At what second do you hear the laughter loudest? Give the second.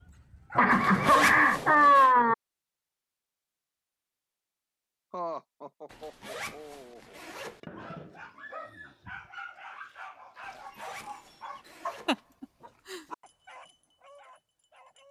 2 s.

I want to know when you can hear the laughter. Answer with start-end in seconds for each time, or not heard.
0.6-2.4, 5.1-7.2, 12.1-13.0.